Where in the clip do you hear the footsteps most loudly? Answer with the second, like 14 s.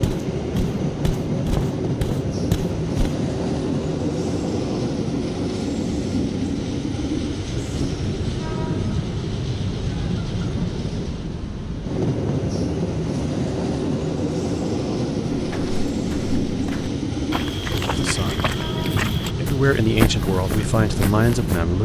20 s.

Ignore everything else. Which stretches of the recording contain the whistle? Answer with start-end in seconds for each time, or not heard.
not heard.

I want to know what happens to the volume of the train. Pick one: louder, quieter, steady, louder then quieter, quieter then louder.
steady.